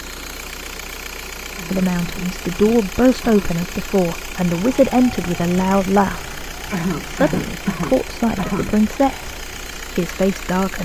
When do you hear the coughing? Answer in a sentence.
You can hear the coughing from 1.6 to 3.6 s and from 6.7 to 8.8 s.